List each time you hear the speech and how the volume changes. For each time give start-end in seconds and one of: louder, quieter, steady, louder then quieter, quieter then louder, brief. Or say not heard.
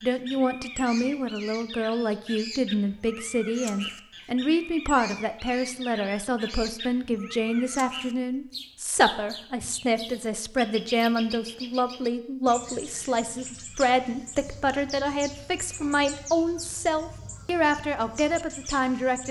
0.0-19.2 steady.